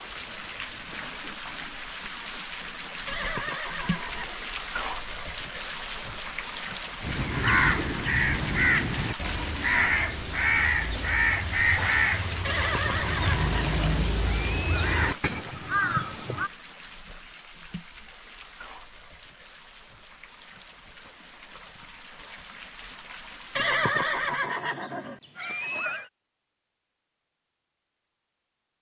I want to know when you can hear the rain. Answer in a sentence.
You can hear the rain from 0.0 to 24.5 s.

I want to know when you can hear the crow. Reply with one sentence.
The crow can be heard from 7.0 to 16.5 s.